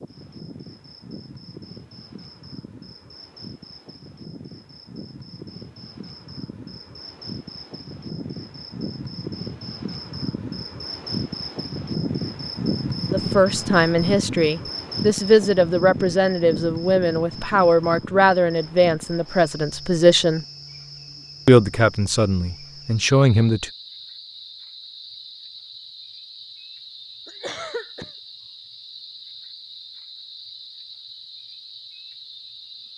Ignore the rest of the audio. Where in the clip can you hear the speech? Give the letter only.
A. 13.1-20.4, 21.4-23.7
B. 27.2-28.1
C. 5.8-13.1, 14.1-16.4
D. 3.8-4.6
A.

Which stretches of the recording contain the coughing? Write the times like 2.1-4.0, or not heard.
27.2-28.1.